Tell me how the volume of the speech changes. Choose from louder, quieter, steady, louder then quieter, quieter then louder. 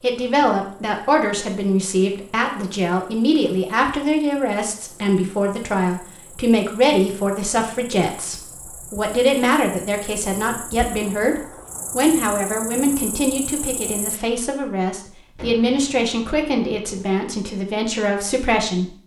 steady.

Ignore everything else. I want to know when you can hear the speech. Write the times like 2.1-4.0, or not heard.
0.0-18.9.